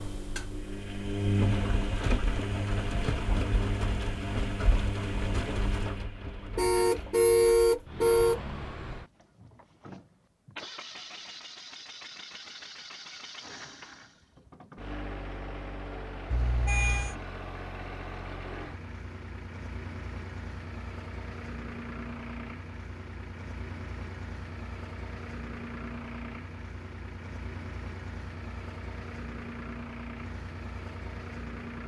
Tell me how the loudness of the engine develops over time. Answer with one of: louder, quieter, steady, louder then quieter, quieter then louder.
quieter.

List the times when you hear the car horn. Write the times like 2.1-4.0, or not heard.
6.5-8.4, 16.3-17.1.